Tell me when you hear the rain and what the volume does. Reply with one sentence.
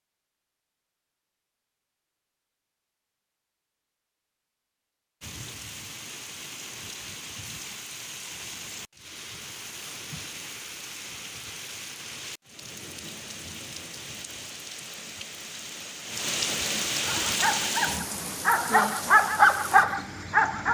You can hear the rain from 5.2 to 20.6 s, getting louder.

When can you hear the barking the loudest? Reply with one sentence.
The loudest moment of the barking is at 19 seconds.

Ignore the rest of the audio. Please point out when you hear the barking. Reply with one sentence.
You can hear the barking from 17.1 to 20.6 s.